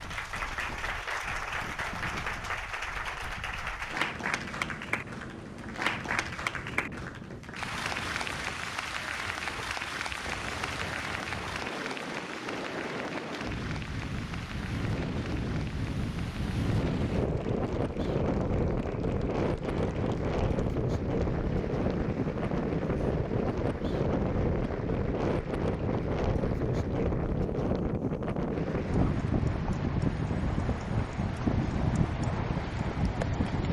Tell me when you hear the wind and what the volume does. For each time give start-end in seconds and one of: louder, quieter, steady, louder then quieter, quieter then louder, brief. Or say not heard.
0.0-33.6 louder.